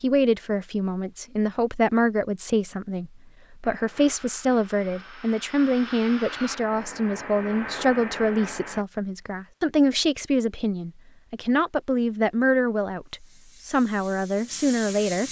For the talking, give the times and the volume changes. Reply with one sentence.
The talking can be heard from 0.0 to 15.2 s, at a steady volume.